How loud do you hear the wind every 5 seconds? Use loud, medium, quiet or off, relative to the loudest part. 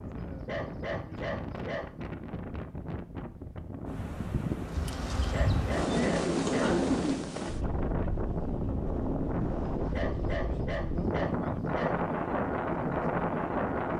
medium, loud, loud.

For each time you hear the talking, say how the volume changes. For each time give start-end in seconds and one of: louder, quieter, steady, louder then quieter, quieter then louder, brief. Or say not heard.
not heard.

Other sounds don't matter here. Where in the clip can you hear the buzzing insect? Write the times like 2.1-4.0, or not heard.
4.6-7.2.